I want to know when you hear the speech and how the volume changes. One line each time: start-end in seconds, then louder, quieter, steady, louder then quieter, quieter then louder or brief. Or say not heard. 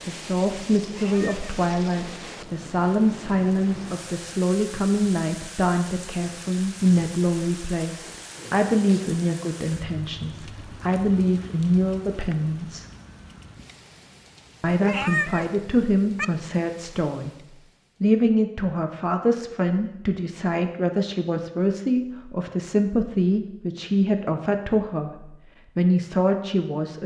0.1-12.8 steady
14.6-17.3 brief
18.0-27.0 steady.